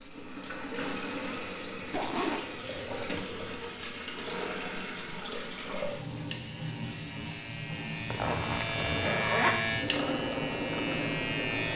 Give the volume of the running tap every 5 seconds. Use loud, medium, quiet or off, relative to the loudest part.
medium, medium, loud.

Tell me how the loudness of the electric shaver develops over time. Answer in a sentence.
The volume of the electric shaver goes up.